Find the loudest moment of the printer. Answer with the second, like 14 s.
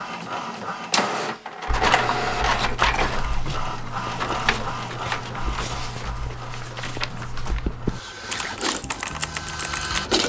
2 s.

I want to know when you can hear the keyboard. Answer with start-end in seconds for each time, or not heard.
1.6-10.1.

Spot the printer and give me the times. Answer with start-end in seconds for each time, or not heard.
0.0-10.2.